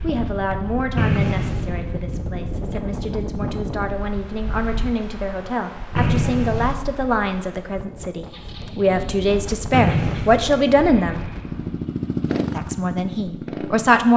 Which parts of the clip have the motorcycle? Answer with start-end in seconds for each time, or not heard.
8.2-14.1.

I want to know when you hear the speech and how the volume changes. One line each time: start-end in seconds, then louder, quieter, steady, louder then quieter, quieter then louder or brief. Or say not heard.
0.0-11.2 louder
12.5-14.1 brief.